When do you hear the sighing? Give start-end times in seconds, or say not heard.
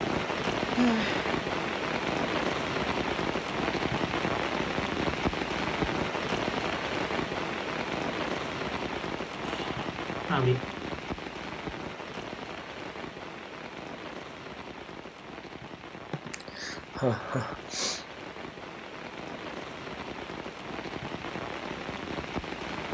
0.8-1.3, 9.4-10.6, 16.1-18.1.